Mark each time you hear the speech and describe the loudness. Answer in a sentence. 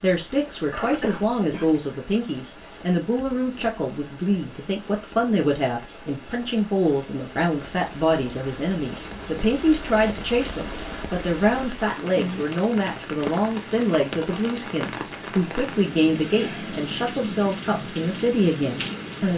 You can hear the speech from 0.0 to 19.3 s, at a steady volume.